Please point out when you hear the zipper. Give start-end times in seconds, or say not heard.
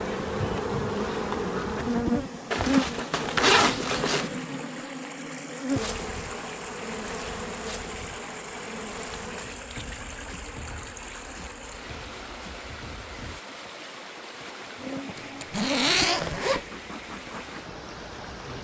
2.5-4.3, 15.2-16.6.